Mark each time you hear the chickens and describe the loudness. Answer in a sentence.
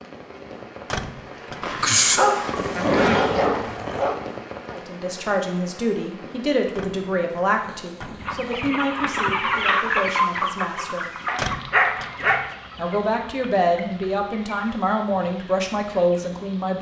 The chickens can be heard from 8.2 to 16.3 s, getting quieter.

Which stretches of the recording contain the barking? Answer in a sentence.
You can hear the barking from 1.6 to 4.2 s and from 11.2 to 12.5 s.